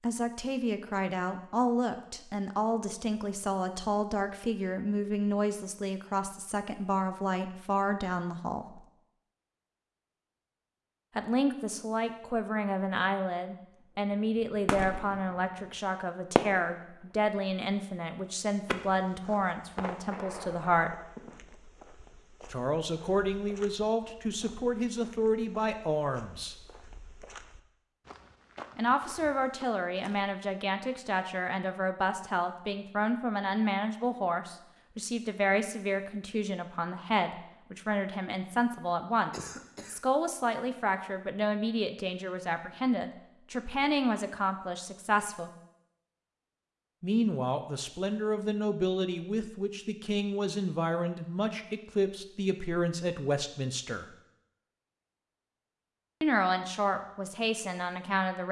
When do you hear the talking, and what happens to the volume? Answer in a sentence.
The talking can be heard from 0.0 to 8.8 s, at a steady volume; from 11.2 to 20.9 s, at a steady volume; from 22.5 to 26.6 s, at a steady volume; from 28.8 to 45.5 s, at a steady volume; from 47.0 to 54.0 s, at a steady volume; and briefly from 56.2 to 58.4 s.